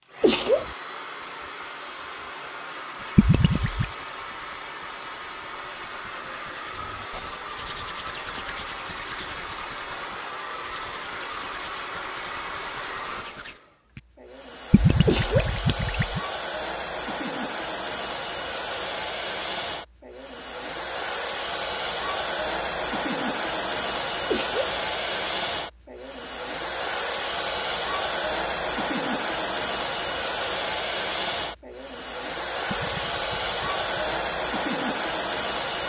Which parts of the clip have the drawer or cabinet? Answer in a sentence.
You can't hear the drawer or cabinet here.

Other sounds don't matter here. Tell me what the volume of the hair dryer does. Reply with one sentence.
The loudness of the hair dryer goes up.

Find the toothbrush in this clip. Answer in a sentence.
You can hear the toothbrush from 3.0 to 13.6 s.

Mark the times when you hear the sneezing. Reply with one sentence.
You can hear the sneezing from 0.2 to 0.7 s, from 15.1 to 15.6 s and from 24.3 to 24.8 s.